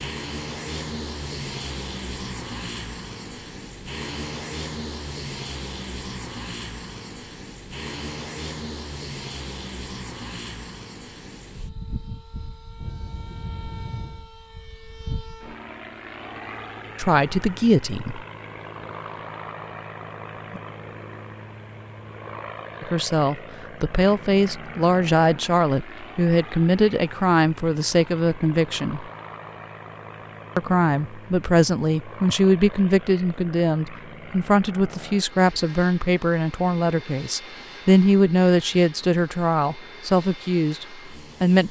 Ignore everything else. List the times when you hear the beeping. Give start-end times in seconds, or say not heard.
12.8-14.3.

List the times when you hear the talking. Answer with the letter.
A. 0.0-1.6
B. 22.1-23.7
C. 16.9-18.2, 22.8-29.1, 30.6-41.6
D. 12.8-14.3
C.